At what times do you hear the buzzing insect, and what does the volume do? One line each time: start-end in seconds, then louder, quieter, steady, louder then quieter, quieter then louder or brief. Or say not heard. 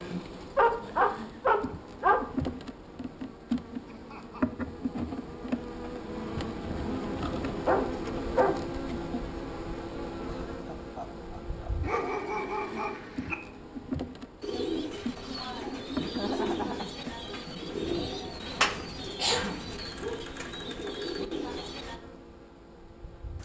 0.0-23.4 quieter.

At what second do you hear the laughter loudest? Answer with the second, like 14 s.
16 s.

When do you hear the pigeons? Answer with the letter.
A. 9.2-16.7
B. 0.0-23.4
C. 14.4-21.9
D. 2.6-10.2
C.